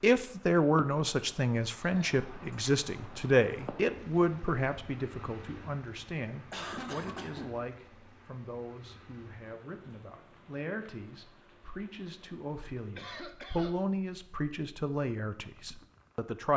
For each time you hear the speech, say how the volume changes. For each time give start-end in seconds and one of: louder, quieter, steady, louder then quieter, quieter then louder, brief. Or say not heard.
0.0-16.5 quieter then louder.